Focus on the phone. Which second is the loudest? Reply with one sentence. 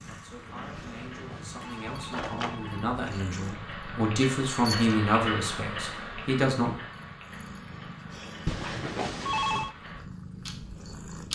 The volume of the phone peaks at 9 seconds.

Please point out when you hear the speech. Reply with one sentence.
The speech can be heard from 0.1 to 6.8 s.